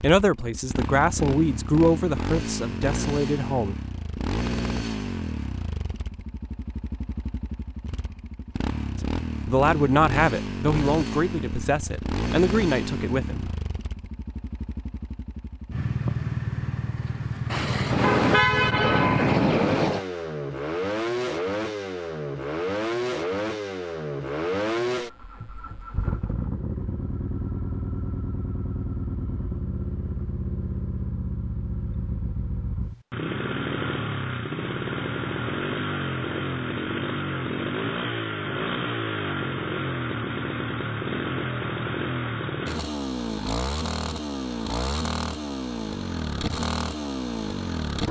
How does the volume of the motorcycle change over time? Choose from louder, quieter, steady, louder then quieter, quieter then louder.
steady.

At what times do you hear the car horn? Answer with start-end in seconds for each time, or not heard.
17.5-20.1.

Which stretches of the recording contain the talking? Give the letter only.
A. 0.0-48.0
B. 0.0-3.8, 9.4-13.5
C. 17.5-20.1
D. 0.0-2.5
B.